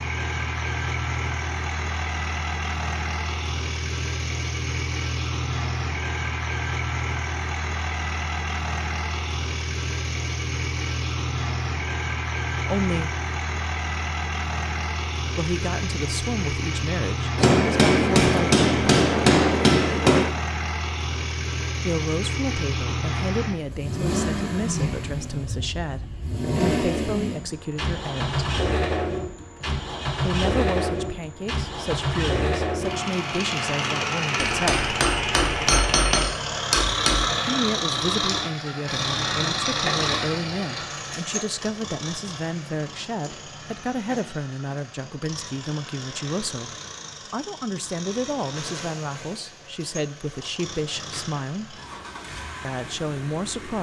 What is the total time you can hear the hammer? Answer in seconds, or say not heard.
6 s.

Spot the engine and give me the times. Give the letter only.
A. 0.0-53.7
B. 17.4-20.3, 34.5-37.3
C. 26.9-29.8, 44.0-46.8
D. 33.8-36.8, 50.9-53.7
A.